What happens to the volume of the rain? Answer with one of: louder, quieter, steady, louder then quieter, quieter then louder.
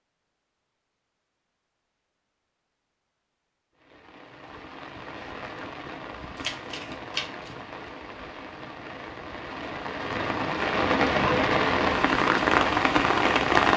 louder.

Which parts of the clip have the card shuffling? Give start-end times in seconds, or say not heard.
6.3-7.5.